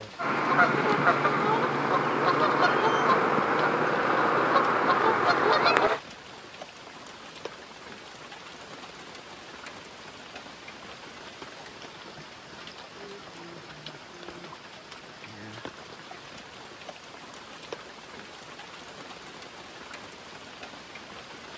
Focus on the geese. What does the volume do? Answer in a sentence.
The loudness of the geese stays about the same.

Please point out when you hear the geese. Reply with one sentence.
You can hear the geese from 0.1 to 6.0 s.